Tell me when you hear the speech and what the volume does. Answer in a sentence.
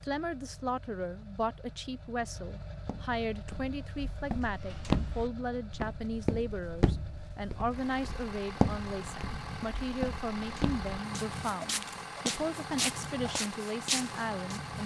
You can hear the speech from 0.0 to 14.8 s, at a steady volume.